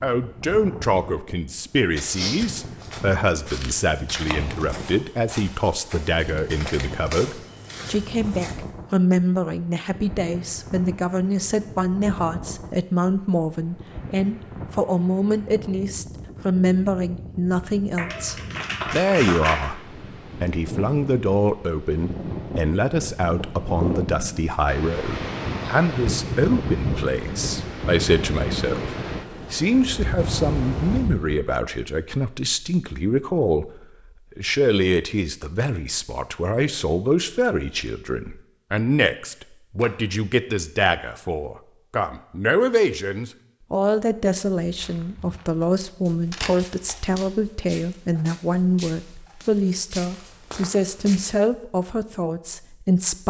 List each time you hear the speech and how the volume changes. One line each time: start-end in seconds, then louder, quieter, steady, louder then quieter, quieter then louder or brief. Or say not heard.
0.0-53.2 steady.